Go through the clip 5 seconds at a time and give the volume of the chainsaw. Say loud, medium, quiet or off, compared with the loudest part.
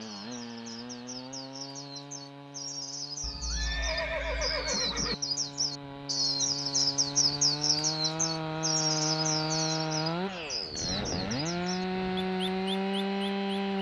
quiet, loud, loud.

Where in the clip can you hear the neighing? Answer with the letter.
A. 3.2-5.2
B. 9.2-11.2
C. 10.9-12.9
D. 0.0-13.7
A.